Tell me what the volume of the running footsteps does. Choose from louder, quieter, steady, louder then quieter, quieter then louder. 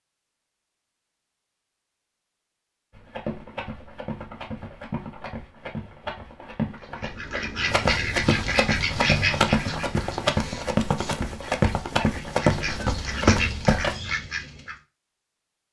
louder.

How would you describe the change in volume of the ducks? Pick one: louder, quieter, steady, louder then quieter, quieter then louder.
quieter then louder.